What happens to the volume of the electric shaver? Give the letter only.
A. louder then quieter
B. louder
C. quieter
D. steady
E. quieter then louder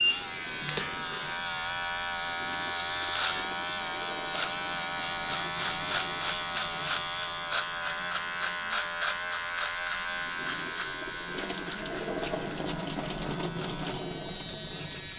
C.